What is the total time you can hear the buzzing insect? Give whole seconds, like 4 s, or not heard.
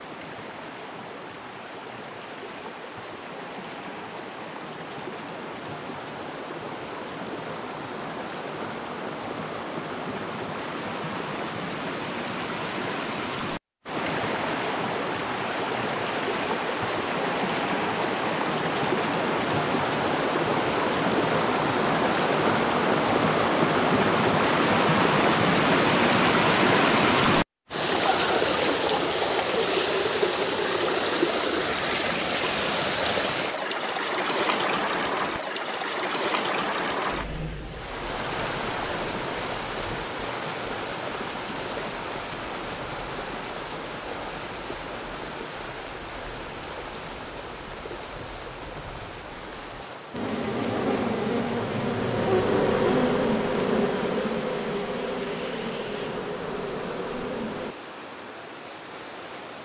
8 s.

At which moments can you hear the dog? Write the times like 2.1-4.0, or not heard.
not heard.